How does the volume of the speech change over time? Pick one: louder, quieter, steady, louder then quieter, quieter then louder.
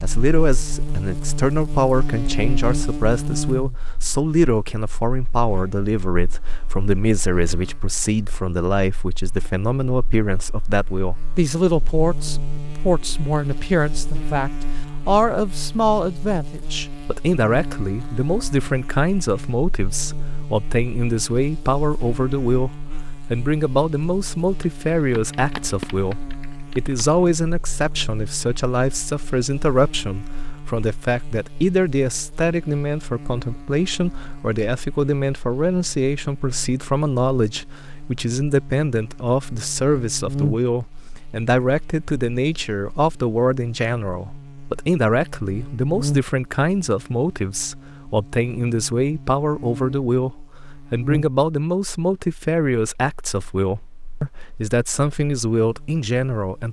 steady.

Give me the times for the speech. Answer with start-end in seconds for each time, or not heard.
0.0-56.6.